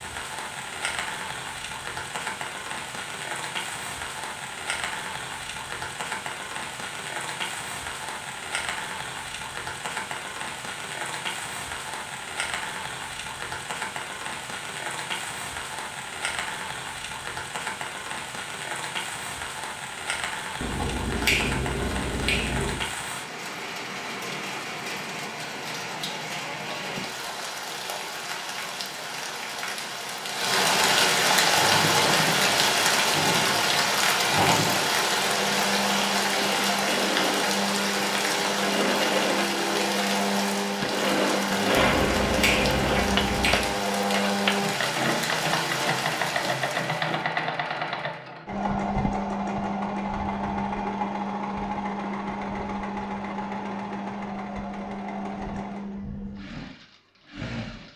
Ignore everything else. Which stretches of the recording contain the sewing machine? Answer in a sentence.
You can hear the sewing machine from 31.5 to 57.9 s.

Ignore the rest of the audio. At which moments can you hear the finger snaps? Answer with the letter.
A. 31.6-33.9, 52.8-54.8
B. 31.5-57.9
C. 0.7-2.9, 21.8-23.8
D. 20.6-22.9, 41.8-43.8
D.